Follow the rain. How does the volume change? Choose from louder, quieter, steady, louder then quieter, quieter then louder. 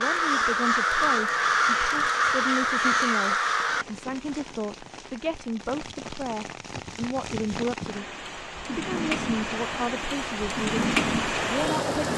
louder.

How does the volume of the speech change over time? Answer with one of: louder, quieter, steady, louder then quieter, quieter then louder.
steady.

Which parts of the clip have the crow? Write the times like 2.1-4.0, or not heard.
0.0-3.9.